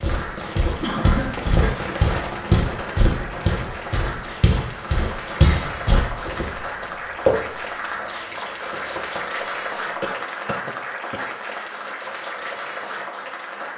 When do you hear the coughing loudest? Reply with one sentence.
The volume of the coughing peaks at 1 second.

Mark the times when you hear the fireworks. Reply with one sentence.
The fireworks can be heard from 0.0 to 6.6 s.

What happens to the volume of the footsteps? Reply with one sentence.
The loudness of the footsteps goes down.